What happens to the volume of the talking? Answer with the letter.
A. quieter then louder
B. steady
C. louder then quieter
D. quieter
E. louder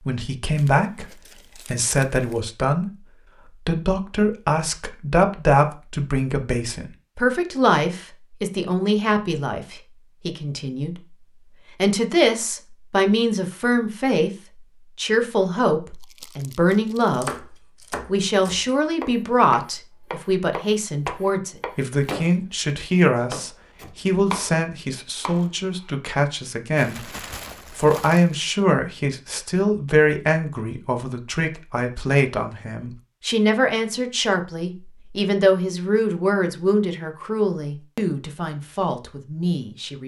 B.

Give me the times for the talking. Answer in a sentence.
The talking can be heard from 0.0 to 40.0 s.